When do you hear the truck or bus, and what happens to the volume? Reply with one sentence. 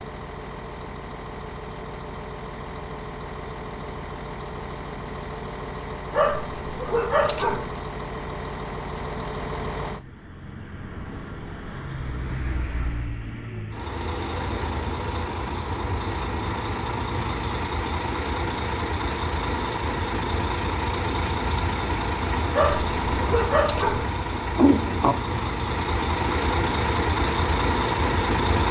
You can hear the truck or bus from 0.0 to 28.6 s, getting louder.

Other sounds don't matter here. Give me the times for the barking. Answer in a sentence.
The barking can be heard from 6.1 to 7.7 s and from 22.5 to 24.1 s.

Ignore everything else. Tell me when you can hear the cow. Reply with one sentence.
You can't hear the cow here.